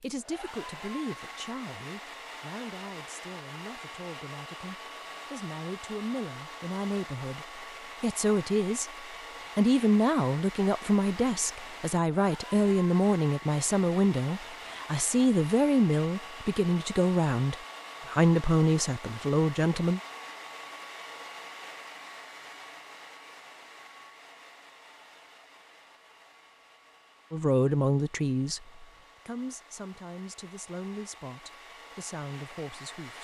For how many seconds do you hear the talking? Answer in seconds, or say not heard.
26 s.